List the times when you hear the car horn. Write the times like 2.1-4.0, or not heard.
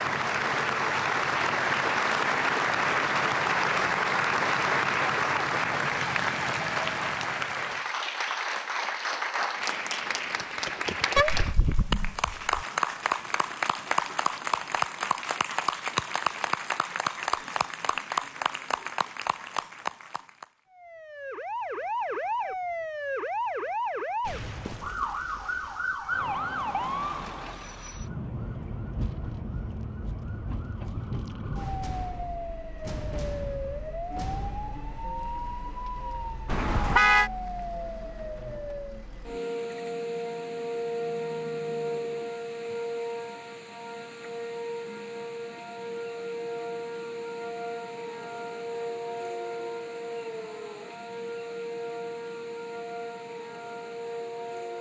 11.2-12.7, 36.5-37.3.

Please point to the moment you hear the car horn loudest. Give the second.
37 s.